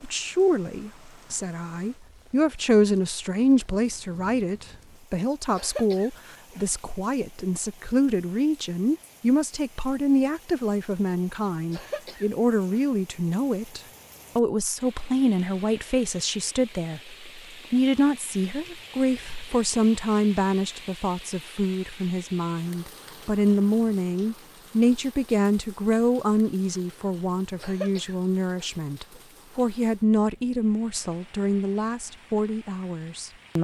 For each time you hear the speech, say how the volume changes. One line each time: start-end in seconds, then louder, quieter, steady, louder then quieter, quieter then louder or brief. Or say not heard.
0.0-33.5 steady.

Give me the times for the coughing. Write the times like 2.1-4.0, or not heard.
5.5-6.7, 11.7-13.3, 27.6-29.2.